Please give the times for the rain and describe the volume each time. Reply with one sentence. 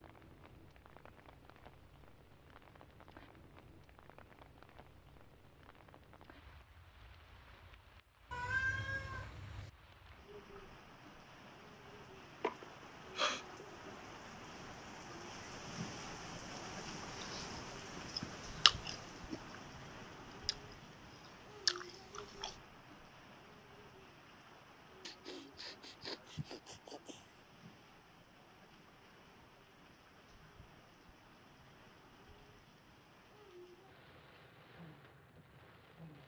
You can hear the rain from 0.0 to 36.2 s, getting louder then quieter.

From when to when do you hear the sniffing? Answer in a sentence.
The sniffing can be heard from 12.4 to 13.7 s and from 25.1 to 27.4 s.